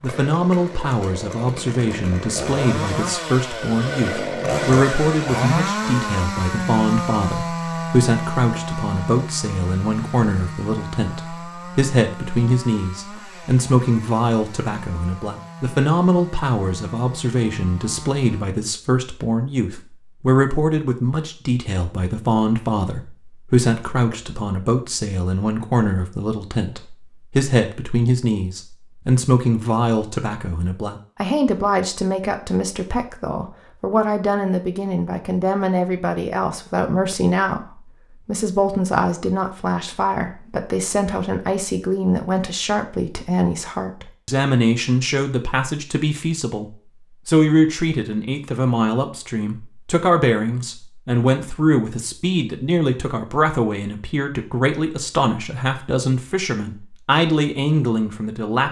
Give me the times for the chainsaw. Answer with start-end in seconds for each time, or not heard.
0.0-18.4.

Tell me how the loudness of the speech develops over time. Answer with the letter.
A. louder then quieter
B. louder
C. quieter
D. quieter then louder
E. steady
E.